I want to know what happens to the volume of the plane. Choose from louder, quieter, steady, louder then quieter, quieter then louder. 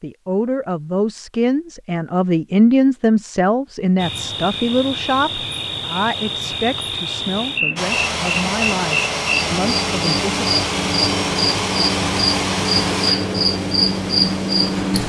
quieter.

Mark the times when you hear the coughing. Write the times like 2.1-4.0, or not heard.
not heard.